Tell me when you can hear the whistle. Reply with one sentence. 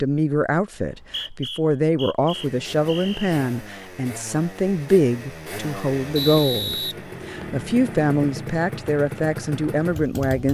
You can hear the whistle from 0.8 to 3.3 s and from 6.2 to 7.7 s.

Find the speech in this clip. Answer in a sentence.
You can hear the speech from 0.0 to 10.4 s.